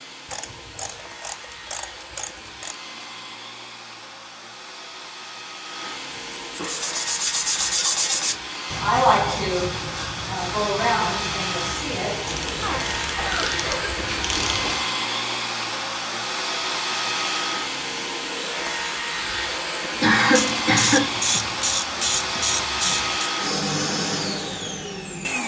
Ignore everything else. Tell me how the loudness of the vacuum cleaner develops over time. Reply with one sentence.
The loudness of the vacuum cleaner goes up.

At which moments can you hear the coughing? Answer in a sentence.
You can hear the coughing from 6.2 to 6.8 s, from 12.6 to 14.0 s and from 20.0 to 21.1 s.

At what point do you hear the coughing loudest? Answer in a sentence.
The loudest moment of the coughing is at 20 seconds.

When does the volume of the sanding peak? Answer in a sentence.
The volume of the sanding peaks at 9 seconds.